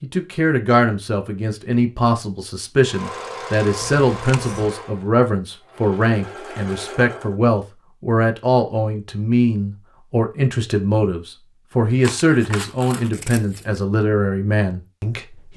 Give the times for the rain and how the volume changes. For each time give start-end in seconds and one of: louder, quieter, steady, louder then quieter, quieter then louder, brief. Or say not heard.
not heard.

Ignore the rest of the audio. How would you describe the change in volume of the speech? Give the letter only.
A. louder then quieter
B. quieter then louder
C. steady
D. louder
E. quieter
C.